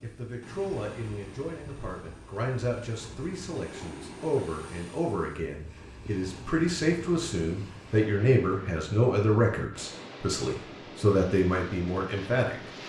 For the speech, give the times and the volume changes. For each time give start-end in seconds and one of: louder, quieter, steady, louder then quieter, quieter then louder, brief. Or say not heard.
0.0-12.6 louder.